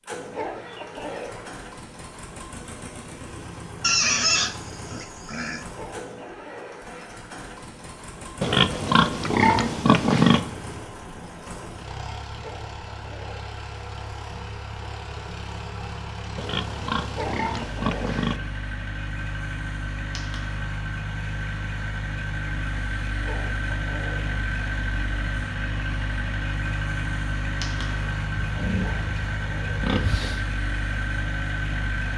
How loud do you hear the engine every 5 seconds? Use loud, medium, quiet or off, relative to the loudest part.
medium, medium, medium, medium, loud, loud, loud.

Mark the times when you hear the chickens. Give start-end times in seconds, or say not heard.
0.3-1.5, 5.8-6.9, 12.4-13.6, 17.1-18.2, 23.2-24.4, 28.8-29.9.